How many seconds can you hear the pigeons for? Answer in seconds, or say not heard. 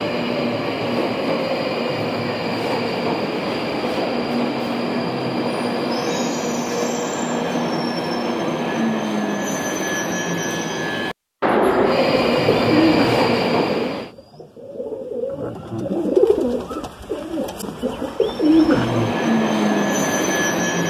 7 s.